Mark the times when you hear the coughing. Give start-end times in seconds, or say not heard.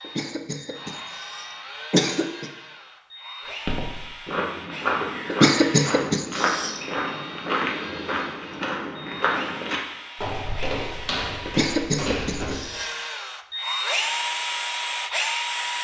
0.1-2.5, 5.2-6.8, 11.4-12.9.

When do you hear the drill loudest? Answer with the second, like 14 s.
14 s.